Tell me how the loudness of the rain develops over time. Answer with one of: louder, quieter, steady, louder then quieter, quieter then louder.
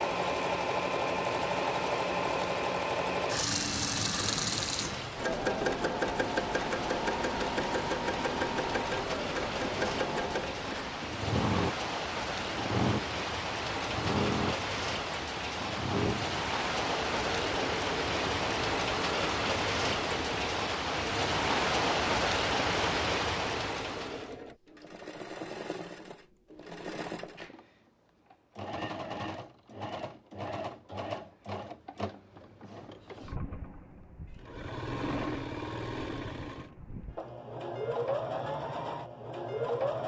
louder.